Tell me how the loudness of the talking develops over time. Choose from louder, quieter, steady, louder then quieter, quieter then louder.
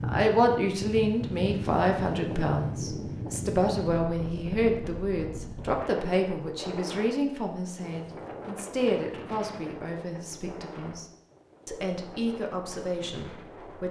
quieter.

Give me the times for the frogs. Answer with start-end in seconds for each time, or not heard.
not heard.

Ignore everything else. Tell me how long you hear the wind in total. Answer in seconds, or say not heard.
14 s.